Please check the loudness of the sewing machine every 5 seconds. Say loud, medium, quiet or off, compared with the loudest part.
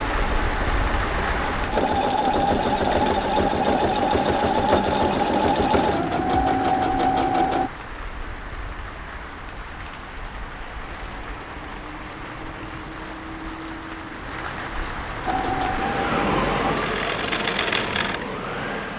loud, loud, off, medium.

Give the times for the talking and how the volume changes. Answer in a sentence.
The talking can't be heard in this clip.